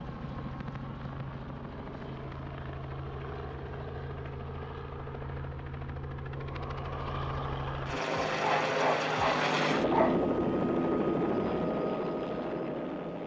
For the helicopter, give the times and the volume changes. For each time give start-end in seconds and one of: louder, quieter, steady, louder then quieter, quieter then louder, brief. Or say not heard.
0.0-13.2 louder.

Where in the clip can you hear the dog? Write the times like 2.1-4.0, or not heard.
8.4-10.2.